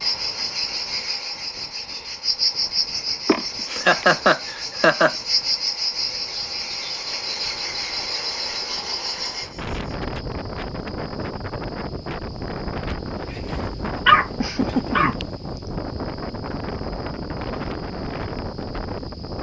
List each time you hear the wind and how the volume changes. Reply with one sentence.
You can hear the wind from 0.0 to 19.3 s, getting louder.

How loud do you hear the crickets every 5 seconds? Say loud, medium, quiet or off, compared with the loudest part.
loud, loud, quiet, quiet.